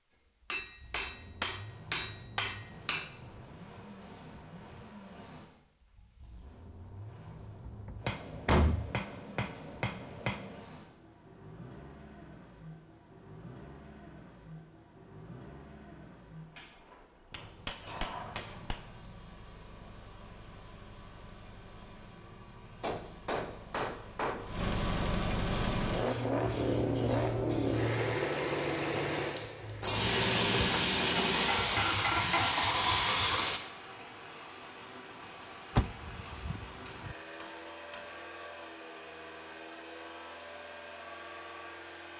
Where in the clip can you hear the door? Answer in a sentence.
You can hear the door from 7.7 to 8.9 s and from 35.8 to 37.1 s.